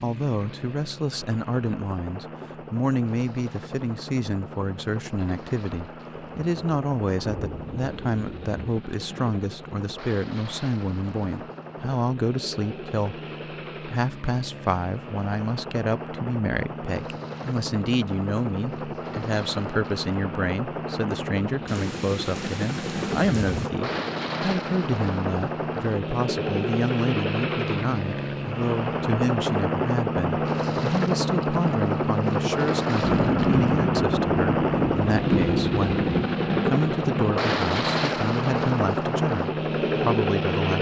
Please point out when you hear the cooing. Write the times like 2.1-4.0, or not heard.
not heard.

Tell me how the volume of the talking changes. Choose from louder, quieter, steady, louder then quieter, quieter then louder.
steady.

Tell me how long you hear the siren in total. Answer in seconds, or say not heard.
not heard.